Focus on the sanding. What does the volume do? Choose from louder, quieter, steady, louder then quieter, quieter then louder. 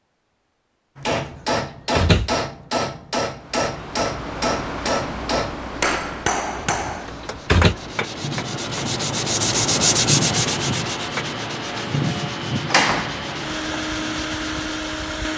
louder then quieter.